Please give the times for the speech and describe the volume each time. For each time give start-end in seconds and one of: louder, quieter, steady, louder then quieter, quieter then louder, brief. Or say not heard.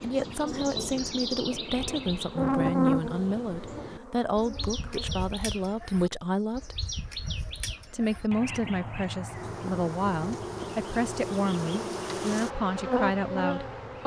0.0-6.8 steady
7.9-14.0 steady.